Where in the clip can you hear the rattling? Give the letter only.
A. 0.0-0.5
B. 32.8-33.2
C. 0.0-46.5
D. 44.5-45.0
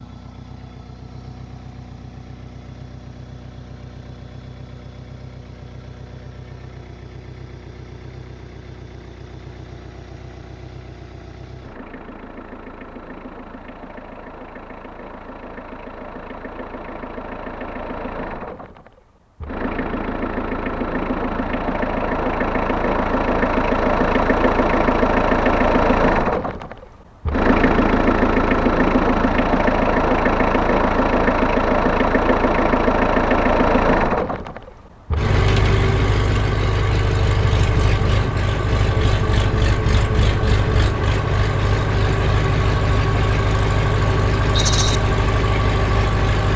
D.